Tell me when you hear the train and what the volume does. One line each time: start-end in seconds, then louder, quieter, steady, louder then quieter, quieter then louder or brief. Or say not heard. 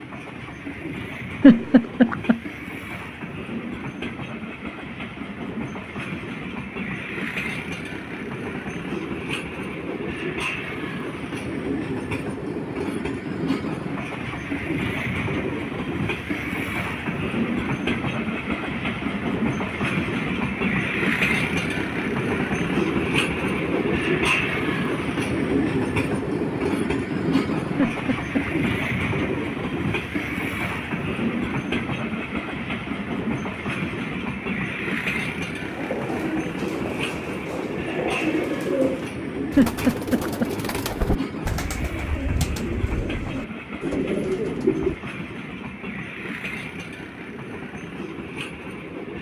0.0-49.1 louder then quieter.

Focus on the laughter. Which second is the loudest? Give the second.
2 s.